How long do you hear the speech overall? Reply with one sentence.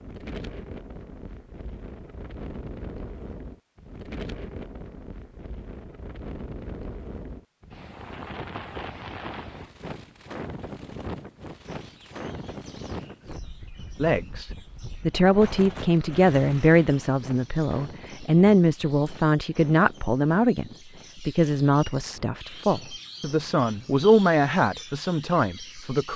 The speech can be heard for 12 seconds in total.